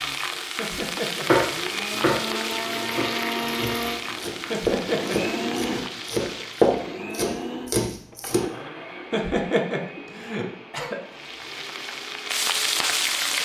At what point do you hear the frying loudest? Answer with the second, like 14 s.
13 s.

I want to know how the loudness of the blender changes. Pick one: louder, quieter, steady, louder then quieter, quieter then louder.
quieter.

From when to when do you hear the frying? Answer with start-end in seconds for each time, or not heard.
0.0-7.1, 11.0-13.3.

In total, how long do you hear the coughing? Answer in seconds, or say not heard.
4 s.